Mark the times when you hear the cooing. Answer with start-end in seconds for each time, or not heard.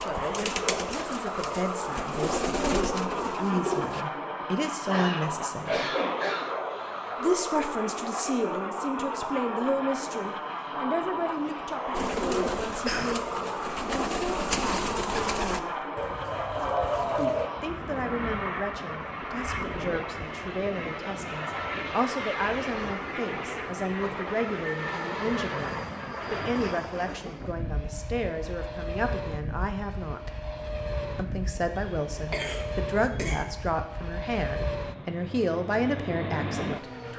0.0-4.0, 11.9-17.5.